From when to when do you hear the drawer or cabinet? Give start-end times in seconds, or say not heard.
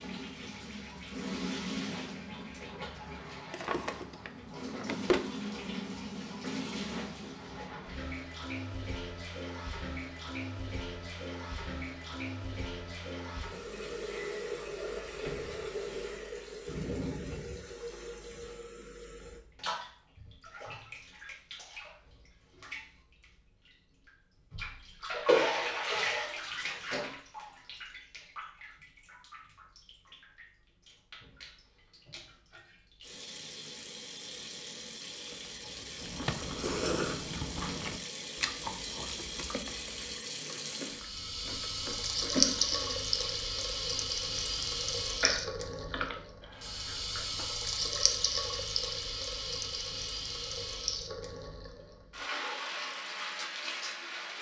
3.5-5.2, 35.6-36.5.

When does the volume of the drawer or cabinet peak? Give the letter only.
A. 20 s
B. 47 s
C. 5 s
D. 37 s
C.